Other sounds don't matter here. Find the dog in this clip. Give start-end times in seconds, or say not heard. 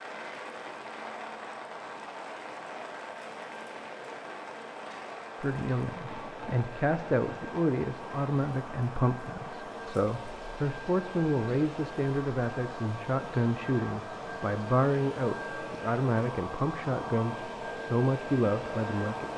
not heard.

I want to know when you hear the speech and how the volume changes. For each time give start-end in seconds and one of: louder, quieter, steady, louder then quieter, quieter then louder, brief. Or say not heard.
5.4-19.3 steady.